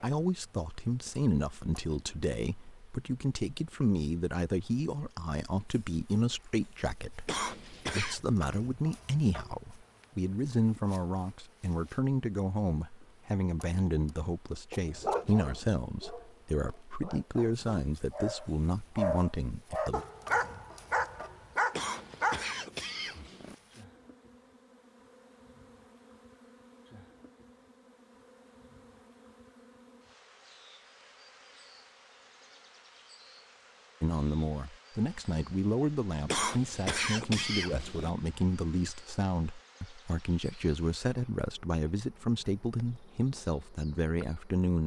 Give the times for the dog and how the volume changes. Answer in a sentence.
You can hear the dog from 14.7 to 22.6 s, getting quieter then louder.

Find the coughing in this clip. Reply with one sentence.
The coughing can be heard from 7.2 to 8.2 s, from 21.7 to 23.6 s and from 36.2 to 38.1 s.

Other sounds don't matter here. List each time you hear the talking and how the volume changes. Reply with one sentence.
The talking can be heard from 0.0 to 20.1 s, at a steady volume; and from 34.0 to 44.8 s, at a steady volume.